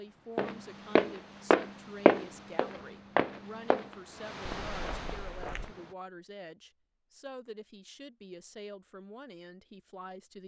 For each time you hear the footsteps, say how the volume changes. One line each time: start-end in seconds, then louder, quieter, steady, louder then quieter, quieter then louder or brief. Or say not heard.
0.3-5.7 quieter.